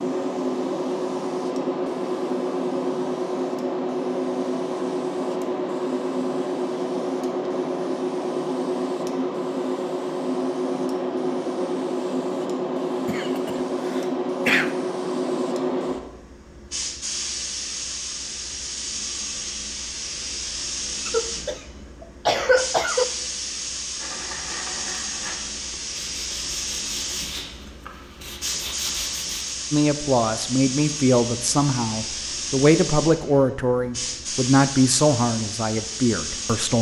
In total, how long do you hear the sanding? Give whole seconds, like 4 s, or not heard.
6 s.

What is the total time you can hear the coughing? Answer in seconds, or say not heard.
4 s.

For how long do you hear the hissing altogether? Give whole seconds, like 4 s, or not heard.
37 s.